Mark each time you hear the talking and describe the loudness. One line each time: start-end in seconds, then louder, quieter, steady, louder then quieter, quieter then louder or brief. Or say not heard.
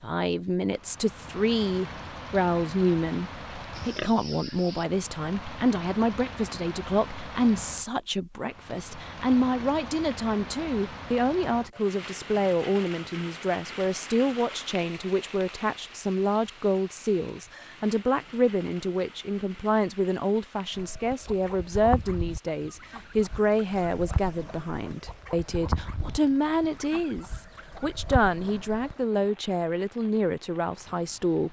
0.0-31.4 steady.